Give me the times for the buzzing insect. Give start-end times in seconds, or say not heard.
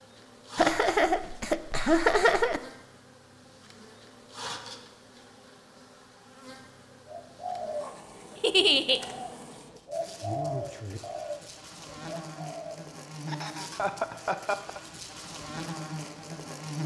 0.0-16.8.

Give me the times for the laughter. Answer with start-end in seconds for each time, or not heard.
0.6-2.6, 8.4-9.0, 13.2-14.8.